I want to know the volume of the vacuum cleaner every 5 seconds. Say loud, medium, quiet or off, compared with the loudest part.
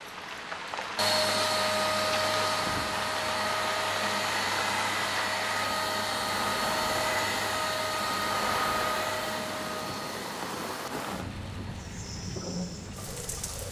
loud, loud, quiet.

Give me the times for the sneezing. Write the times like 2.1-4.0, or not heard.
not heard.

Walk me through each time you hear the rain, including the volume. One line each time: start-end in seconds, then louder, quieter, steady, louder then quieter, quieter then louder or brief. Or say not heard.
0.0-13.6 steady.